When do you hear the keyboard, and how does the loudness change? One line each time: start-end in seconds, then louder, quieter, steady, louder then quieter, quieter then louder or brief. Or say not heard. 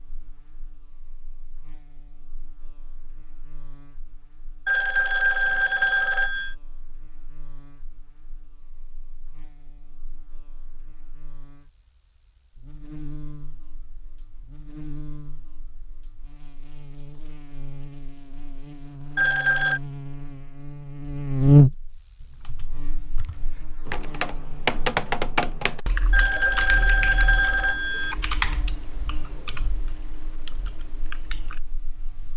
22.1-31.6 louder then quieter.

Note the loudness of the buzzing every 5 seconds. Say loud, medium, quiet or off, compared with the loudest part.
quiet, quiet, quiet, quiet, loud, quiet, quiet.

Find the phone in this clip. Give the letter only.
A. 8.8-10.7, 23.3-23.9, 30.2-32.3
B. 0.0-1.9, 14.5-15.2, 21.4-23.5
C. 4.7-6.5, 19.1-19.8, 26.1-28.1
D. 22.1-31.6
C.